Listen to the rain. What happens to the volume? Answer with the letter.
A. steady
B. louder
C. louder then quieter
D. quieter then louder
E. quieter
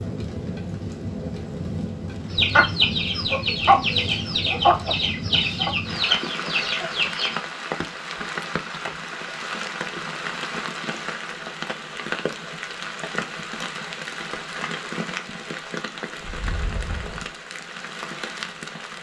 A.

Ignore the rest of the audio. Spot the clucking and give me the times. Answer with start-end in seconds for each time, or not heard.
2.3-7.3.